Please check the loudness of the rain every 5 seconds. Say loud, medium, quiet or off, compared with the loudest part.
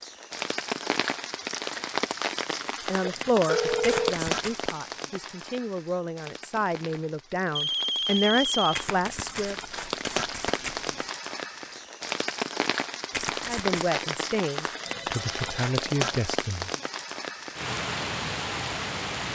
loud, medium, loud, loud.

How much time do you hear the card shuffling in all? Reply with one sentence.
The card shuffling can be heard for 4 seconds in total.